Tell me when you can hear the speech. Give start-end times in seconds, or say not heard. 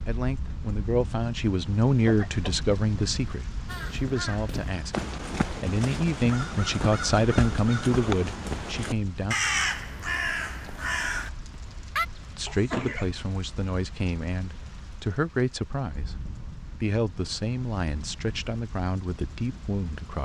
0.1-9.3, 12.3-16.2, 16.8-20.2.